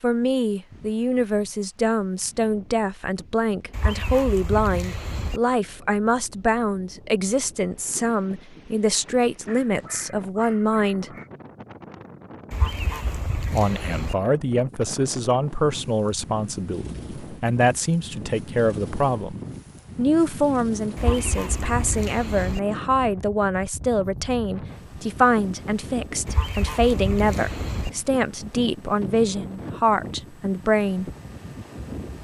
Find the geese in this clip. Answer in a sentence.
The geese can be heard from 3.7 to 5.4 s, from 12.5 to 14.2 s, from 20.9 to 22.6 s and from 26.2 to 27.9 s.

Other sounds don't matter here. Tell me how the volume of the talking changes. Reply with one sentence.
The loudness of the talking stays about the same.